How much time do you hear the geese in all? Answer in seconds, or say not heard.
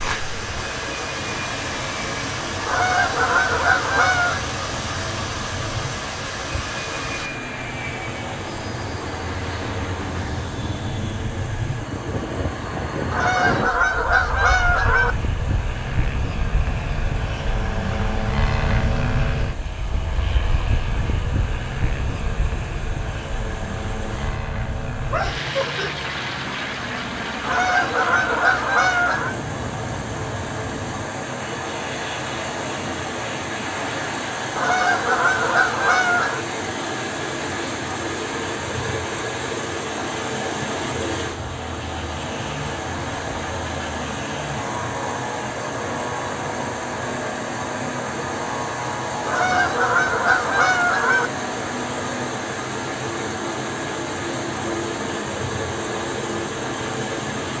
10 s.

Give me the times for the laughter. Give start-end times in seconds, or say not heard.
25.1-25.9.